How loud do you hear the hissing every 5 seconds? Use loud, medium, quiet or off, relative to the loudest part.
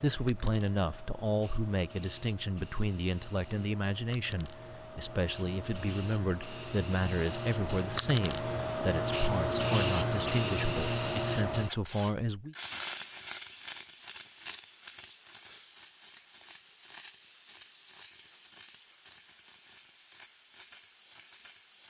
quiet, loud, loud, quiet, quiet.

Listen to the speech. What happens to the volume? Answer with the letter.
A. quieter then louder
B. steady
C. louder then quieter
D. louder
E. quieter
B.